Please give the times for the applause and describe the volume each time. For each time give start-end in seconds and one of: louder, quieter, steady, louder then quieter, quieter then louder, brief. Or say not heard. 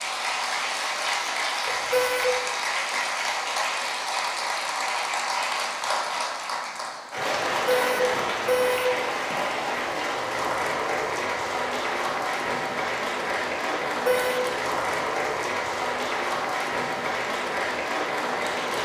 0.0-18.8 steady.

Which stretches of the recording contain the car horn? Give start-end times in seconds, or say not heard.
1.6-2.4, 7.7-8.9, 13.8-14.4.